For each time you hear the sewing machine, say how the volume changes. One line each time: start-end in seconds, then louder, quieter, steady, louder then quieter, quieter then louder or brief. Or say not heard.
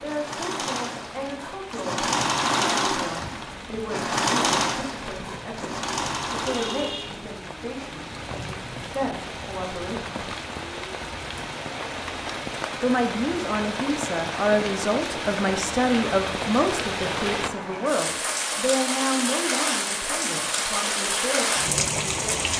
0.0-7.9 louder then quieter.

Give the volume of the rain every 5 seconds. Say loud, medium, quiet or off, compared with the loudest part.
quiet, medium, medium, loud, loud.